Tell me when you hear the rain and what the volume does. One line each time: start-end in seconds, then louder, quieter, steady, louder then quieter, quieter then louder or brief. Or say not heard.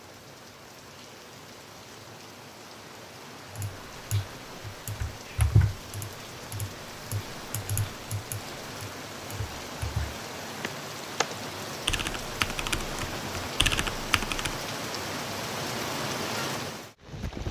0.0-17.4 louder.